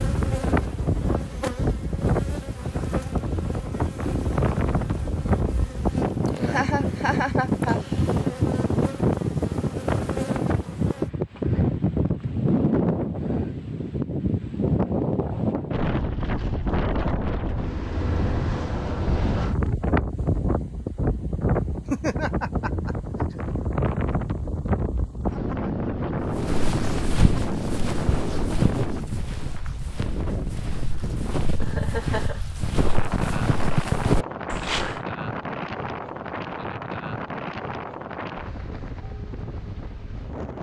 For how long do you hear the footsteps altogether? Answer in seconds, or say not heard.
9 s.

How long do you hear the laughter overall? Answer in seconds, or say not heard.
4 s.